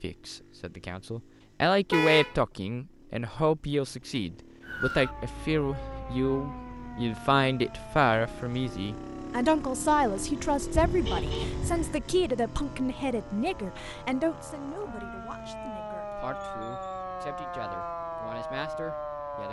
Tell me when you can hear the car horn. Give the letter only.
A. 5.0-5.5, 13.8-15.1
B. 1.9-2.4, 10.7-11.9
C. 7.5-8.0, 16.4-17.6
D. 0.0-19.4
B.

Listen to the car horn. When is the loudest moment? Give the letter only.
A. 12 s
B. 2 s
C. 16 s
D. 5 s
B.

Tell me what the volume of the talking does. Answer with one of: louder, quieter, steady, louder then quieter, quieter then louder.
quieter.